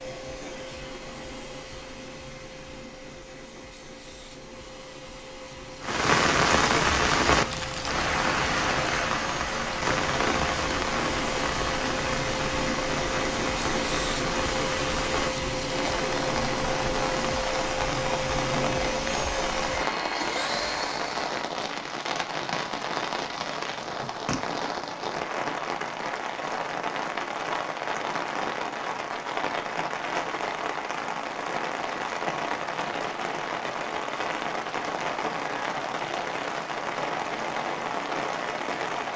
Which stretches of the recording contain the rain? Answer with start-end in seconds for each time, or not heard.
5.8-39.1.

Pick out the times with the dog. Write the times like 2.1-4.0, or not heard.
not heard.